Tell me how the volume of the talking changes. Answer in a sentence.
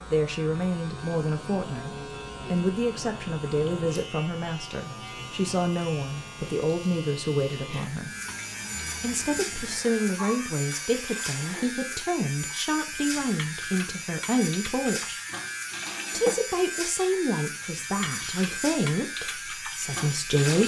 The loudness of the talking stays about the same.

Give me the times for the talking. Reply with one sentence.
The talking can be heard from 0.1 to 8.1 s, from 9.0 to 15.2 s and from 16.1 to 20.6 s.